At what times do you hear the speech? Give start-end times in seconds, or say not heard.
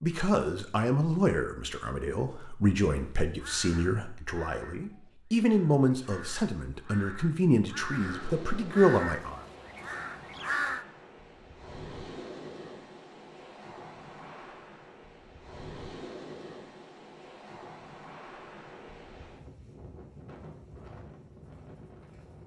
0.0-9.4.